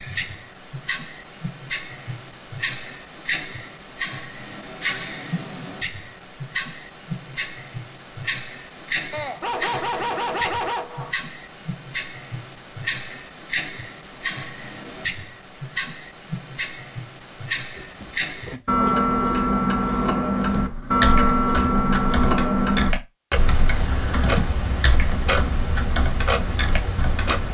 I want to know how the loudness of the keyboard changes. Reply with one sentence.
The volume of the keyboard stays about the same.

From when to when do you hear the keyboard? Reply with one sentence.
You can hear the keyboard from 20.4 to 27.4 s.